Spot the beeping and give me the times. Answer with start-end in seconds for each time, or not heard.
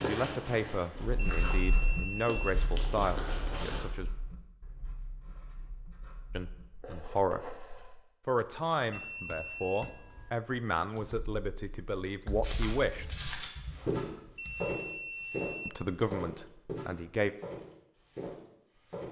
1.1-3.0, 8.9-9.9, 14.3-16.1.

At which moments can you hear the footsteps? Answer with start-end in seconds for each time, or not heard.
0.0-3.9, 12.4-19.0.